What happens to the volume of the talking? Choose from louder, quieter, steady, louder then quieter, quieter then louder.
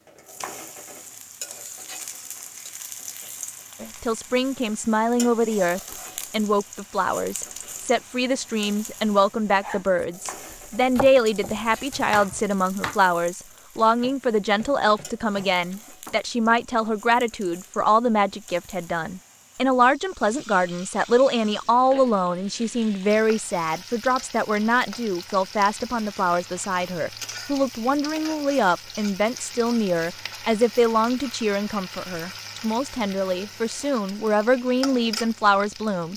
steady.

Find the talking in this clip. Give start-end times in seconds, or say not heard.
3.8-36.1.